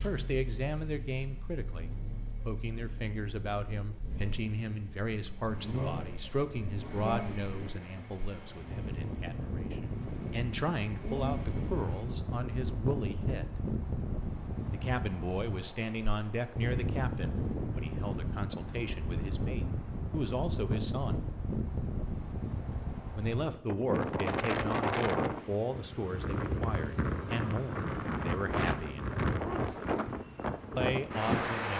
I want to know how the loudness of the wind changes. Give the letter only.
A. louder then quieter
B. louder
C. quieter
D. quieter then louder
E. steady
B.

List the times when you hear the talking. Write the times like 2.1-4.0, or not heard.
0.0-13.7, 14.7-21.2, 23.1-29.8, 30.8-31.7.